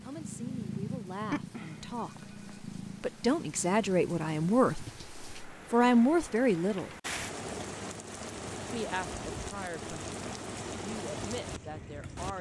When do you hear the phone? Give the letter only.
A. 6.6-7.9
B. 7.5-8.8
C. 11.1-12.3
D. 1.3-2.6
D.